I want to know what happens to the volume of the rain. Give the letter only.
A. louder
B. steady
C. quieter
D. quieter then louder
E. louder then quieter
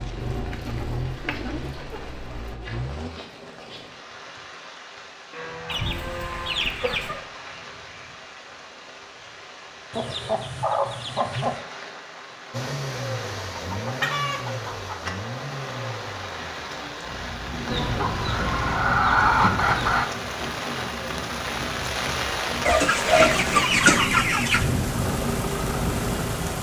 A.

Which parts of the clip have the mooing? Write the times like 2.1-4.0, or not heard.
5.3-6.8.